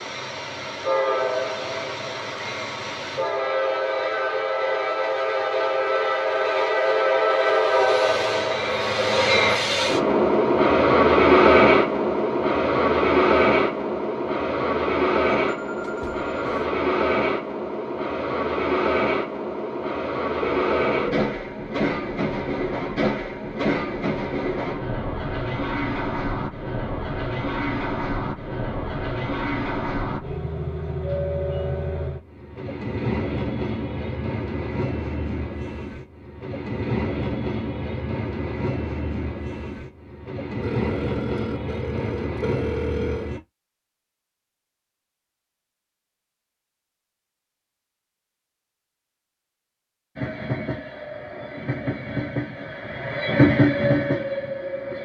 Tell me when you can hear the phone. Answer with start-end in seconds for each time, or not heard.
15.4-16.7, 20.4-21.2, 40.6-43.4.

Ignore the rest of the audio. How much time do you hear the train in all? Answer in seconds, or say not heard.
48 s.